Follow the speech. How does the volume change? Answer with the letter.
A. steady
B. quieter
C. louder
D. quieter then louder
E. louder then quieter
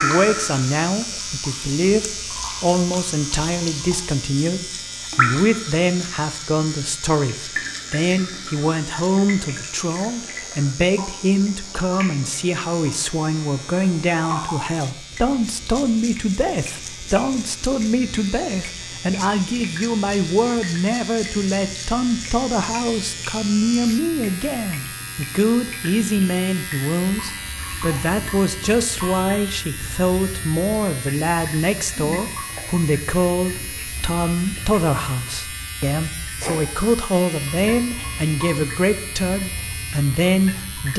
A.